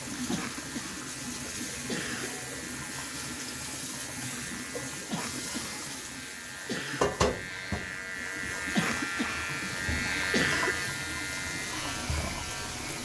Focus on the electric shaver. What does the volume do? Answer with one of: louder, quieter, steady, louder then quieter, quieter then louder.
louder.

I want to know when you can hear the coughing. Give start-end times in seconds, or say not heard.
0.3-1.0, 1.9-2.3, 5.1-5.8, 6.7-7.1, 8.8-9.6, 10.3-10.8.